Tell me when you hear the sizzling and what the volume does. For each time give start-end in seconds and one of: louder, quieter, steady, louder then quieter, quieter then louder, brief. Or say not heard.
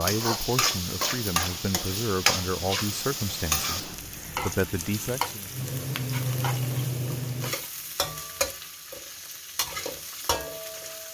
0.0-11.1 quieter.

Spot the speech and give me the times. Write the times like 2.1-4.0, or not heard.
0.0-5.5.